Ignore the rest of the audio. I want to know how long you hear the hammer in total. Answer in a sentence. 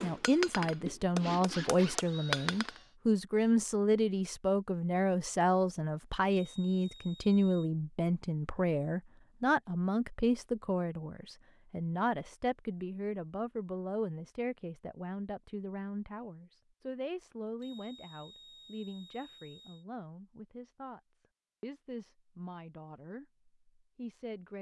The hammer can be heard for 3 seconds in total.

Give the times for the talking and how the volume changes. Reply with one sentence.
You can hear the talking from 0.0 to 24.5 s, getting quieter.